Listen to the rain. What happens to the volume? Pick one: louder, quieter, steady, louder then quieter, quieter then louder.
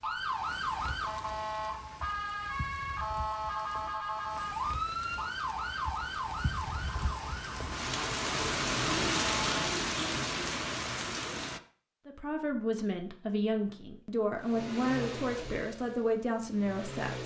louder.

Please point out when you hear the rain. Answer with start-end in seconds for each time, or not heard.
0.0-11.6.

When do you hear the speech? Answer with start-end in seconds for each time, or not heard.
12.1-17.2.